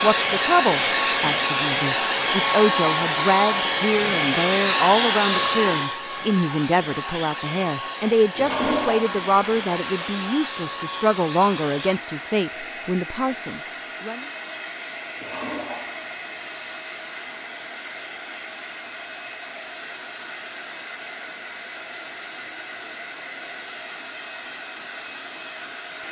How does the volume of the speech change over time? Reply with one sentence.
The loudness of the speech stays about the same.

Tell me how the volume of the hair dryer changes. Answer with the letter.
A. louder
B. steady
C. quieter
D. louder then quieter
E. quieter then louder
C.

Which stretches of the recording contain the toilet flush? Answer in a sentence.
You can hear the toilet flush from 8.3 to 10.3 s and from 15.2 to 16.1 s.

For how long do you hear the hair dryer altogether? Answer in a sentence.
You can hear the hair dryer for 26 seconds altogether.